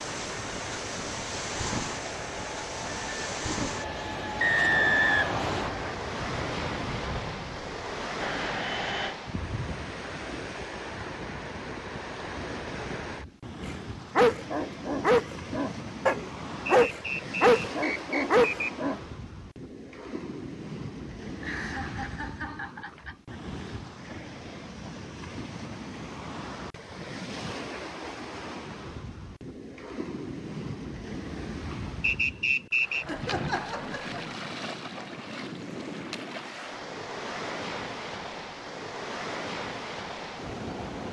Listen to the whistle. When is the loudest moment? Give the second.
5 s.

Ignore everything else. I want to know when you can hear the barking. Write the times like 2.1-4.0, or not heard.
13.6-19.0.